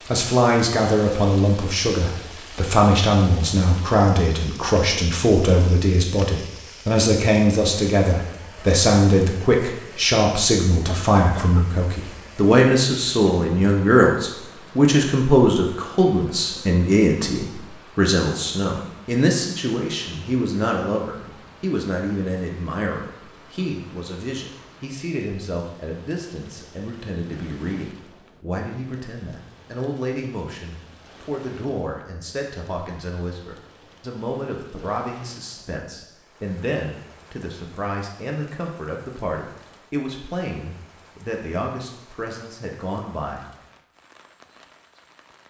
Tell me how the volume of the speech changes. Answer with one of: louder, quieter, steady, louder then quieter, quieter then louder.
quieter.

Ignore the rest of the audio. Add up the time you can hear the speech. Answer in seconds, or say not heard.
43 s.